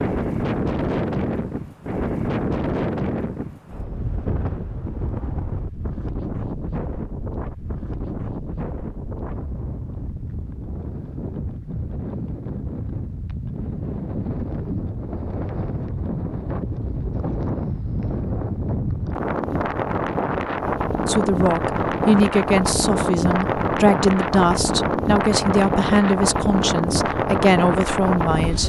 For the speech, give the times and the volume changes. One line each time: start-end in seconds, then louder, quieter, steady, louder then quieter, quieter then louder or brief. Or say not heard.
21.1-28.6 steady.